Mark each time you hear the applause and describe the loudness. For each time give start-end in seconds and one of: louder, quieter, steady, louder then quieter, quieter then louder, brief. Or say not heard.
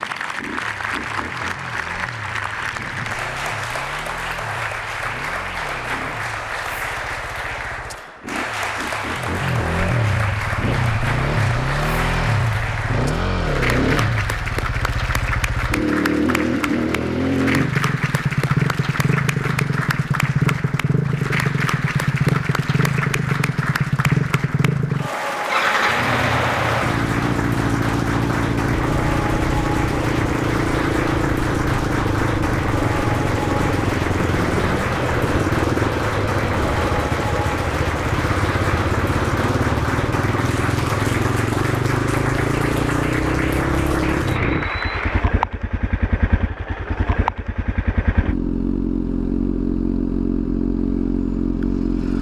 0.0-45.2 steady.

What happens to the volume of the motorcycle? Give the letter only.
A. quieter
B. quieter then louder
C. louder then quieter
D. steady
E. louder
E.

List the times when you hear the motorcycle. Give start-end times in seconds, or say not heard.
0.2-52.1.